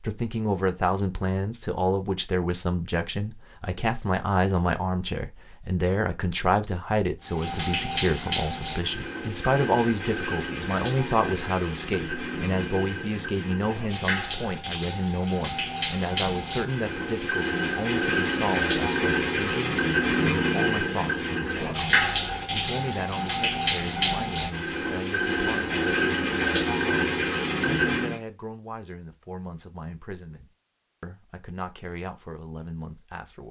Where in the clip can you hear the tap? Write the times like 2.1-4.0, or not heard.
7.2-28.1.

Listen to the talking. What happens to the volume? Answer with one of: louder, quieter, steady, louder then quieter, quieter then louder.
quieter.